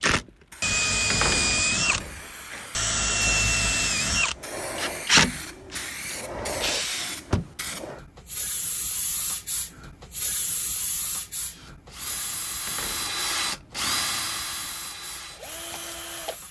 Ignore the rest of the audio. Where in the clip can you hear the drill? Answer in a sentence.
You can hear the drill from 0.0 to 7.2 s and from 11.4 to 16.4 s.